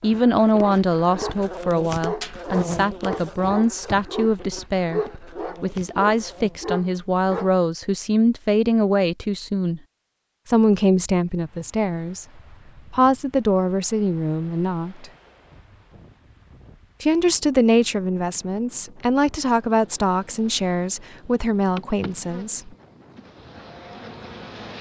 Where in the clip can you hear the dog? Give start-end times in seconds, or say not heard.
0.6-7.5.